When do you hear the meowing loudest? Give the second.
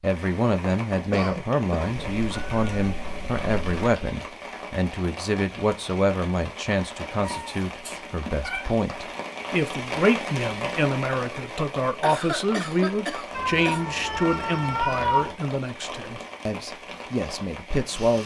15 s.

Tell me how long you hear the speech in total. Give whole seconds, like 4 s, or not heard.
18 s.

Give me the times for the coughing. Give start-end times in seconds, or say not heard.
1.1-2.1, 12.0-13.8.